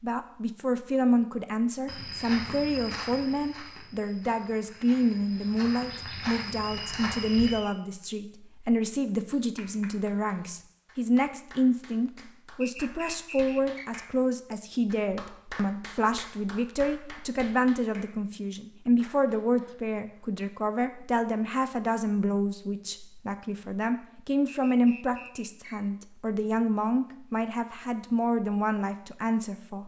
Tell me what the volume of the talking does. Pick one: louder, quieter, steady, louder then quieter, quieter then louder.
steady.